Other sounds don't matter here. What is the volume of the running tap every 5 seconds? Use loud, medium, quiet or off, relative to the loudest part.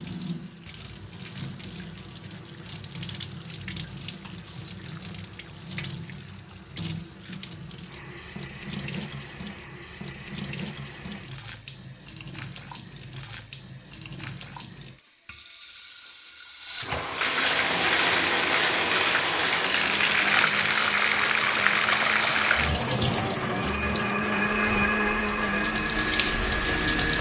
quiet, quiet, quiet, loud, loud, loud.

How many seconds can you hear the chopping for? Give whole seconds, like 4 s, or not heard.
not heard.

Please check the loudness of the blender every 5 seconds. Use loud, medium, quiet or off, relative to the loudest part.
off, off, off, medium, loud, loud.